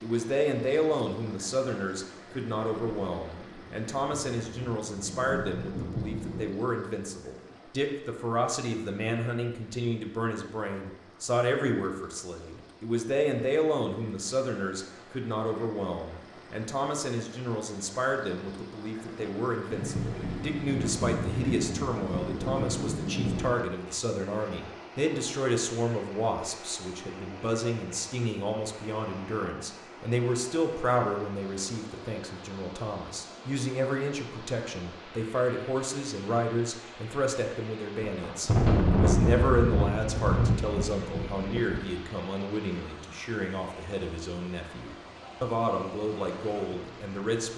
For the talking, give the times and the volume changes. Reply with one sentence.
The talking can be heard from 0.0 to 47.5 s, at a steady volume.